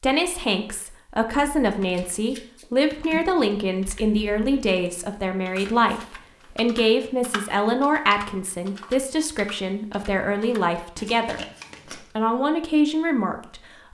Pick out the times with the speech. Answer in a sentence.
You can hear the speech from 0.0 to 13.7 s.